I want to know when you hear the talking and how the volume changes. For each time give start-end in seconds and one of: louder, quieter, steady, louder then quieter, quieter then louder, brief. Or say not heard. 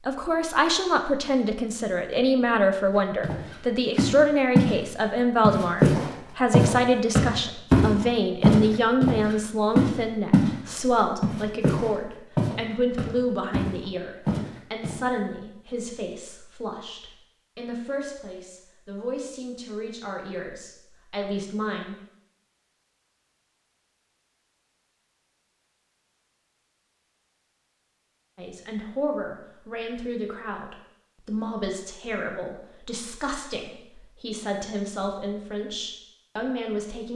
0.1-21.9 quieter
28.4-37.1 steady.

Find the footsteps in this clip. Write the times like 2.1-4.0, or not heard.
3.2-4.8, 5.4-10.6, 11.2-14.9.